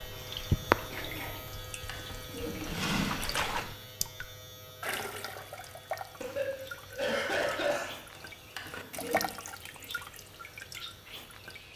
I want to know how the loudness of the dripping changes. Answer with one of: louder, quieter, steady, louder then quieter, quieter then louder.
quieter then louder.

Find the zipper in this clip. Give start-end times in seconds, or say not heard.
not heard.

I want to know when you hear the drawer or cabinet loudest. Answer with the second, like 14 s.
3 s.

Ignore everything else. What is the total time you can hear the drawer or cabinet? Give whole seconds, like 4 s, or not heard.
3 s.